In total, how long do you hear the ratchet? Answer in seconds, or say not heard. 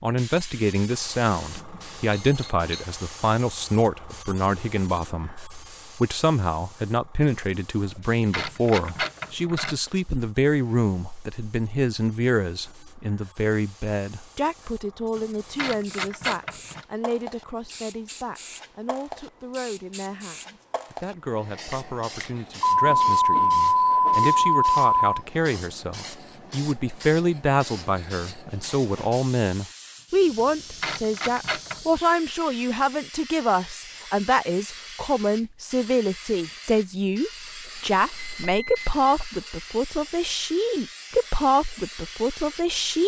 4 s.